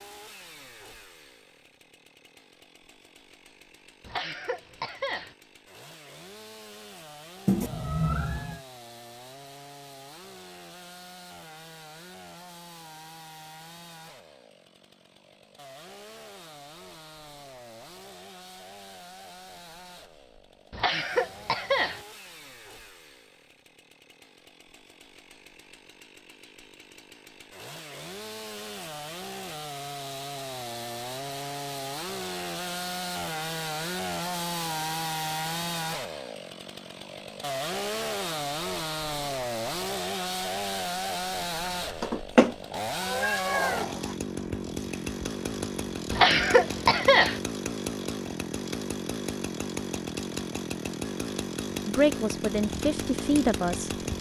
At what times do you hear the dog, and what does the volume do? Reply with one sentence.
The dog can't be heard in this clip.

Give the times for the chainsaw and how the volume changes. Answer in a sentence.
The chainsaw can be heard from 0.0 to 54.1 s, getting louder.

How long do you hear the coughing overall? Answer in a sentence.
The coughing can be heard for 4 seconds in total.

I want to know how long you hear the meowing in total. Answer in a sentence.
The meowing can be heard for 3 seconds in total.